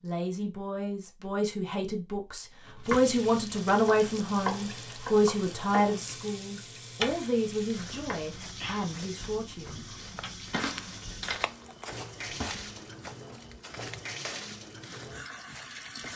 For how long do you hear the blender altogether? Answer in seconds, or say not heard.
not heard.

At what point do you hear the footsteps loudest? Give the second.
11 s.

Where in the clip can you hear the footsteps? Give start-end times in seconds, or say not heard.
7.7-16.1.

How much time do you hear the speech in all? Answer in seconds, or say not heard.
10 s.